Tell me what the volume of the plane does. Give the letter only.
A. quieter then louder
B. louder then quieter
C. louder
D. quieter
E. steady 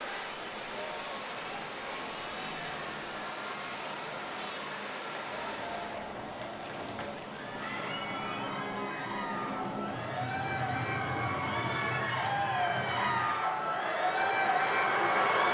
C.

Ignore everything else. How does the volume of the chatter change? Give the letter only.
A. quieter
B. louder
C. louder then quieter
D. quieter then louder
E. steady
B.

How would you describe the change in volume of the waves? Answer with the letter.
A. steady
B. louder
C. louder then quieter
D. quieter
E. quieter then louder
D.